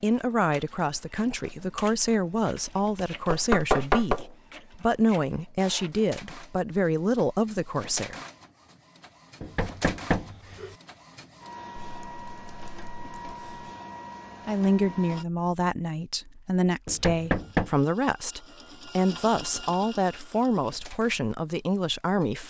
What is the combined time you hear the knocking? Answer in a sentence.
The knocking can be heard for 3 seconds in total.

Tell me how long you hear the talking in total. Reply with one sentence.
The talking can be heard for 16 seconds in total.